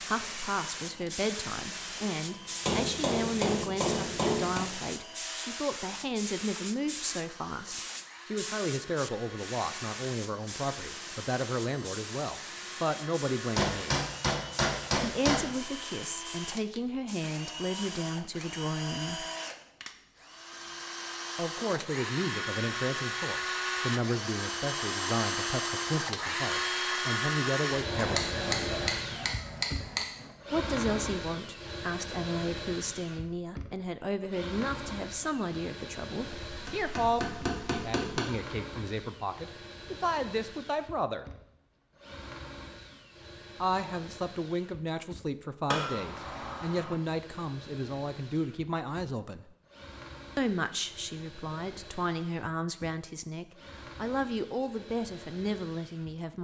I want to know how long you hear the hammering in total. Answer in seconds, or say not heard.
9 s.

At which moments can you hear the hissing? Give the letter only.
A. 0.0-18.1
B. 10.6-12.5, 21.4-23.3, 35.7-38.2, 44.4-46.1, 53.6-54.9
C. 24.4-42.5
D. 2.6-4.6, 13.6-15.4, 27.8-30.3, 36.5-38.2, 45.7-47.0
A.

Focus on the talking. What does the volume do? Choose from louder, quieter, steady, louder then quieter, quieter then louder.
steady.